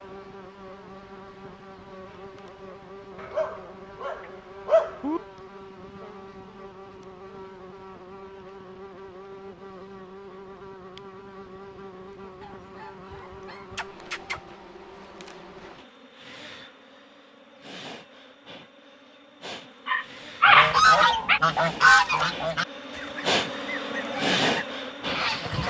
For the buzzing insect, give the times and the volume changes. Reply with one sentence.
You can hear the buzzing insect from 0.0 to 25.6 s, getting louder.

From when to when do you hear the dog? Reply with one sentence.
The dog can be heard from 3.1 to 5.2 s, from 12.4 to 14.4 s and from 19.9 to 21.4 s.